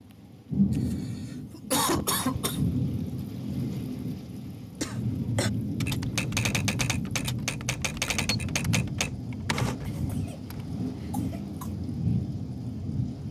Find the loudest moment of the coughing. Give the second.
2 s.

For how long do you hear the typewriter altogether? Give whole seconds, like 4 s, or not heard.
5 s.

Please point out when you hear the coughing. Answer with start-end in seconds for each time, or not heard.
0.7-2.6, 4.8-5.5, 9.8-11.7.